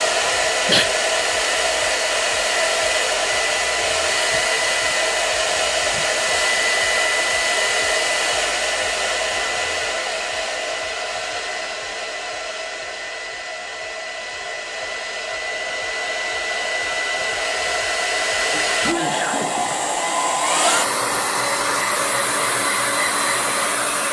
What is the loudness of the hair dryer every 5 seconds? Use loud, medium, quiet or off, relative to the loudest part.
loud, loud, medium, loud, loud.